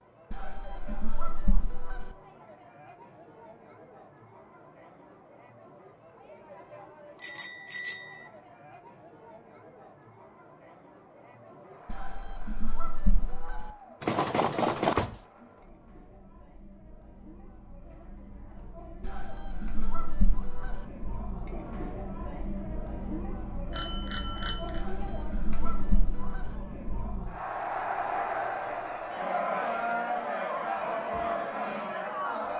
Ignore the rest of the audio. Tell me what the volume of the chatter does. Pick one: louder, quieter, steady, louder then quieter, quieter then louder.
louder.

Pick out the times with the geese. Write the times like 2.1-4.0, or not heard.
0.3-2.1, 11.9-13.7, 19.0-20.9, 24.8-26.6.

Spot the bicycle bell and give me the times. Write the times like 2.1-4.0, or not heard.
7.2-8.3, 14.0-15.2, 23.7-24.9.